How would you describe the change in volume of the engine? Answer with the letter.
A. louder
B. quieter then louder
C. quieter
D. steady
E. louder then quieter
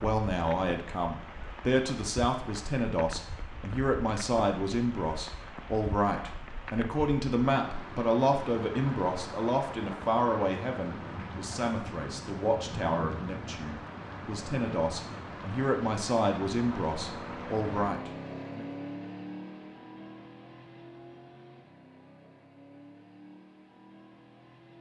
C.